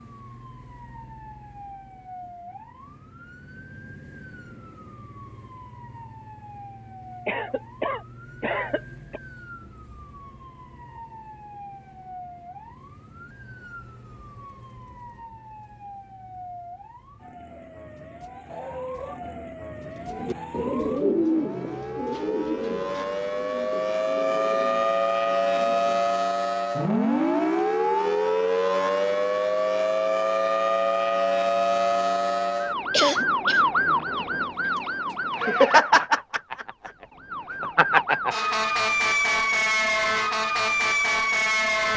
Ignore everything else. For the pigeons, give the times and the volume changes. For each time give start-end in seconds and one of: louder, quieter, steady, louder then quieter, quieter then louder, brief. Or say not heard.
20.0-26.0 quieter.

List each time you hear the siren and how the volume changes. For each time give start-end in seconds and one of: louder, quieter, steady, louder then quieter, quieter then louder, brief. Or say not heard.
0.0-41.9 louder.